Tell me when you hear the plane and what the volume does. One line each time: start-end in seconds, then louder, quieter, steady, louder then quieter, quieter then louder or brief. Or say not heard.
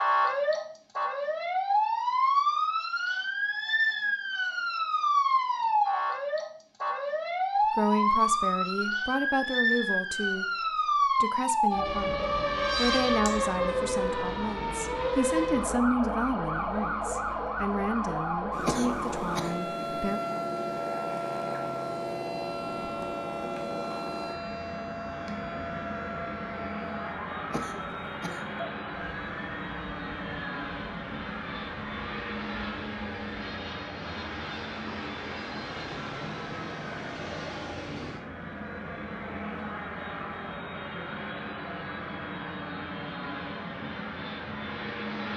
18.5-45.3 steady.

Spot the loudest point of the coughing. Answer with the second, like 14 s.
19 s.